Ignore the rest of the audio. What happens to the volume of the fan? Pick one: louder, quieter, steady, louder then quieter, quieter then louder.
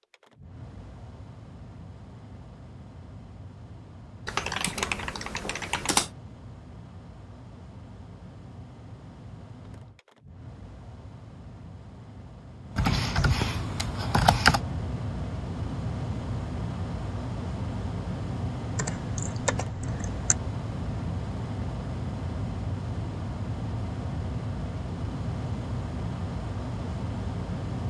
louder.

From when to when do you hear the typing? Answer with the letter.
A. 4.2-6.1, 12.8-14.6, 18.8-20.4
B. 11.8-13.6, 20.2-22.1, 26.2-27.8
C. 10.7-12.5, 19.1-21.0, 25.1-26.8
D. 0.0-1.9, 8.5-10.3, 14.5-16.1
A.